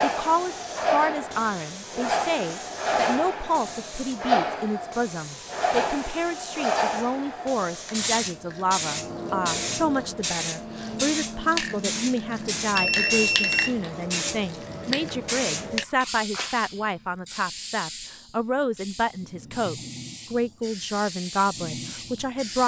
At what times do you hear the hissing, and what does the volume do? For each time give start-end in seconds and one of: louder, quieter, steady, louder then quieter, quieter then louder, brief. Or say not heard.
0.0-22.6 quieter.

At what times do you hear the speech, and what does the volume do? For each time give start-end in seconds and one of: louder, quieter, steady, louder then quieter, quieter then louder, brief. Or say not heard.
0.0-22.6 steady.